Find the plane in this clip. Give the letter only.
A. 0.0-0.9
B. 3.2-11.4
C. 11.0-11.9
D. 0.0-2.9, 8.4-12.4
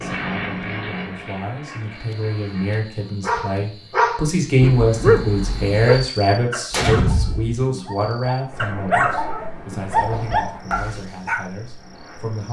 D.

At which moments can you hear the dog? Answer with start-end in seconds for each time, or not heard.
3.2-11.4.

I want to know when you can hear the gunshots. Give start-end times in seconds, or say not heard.
6.7-7.6.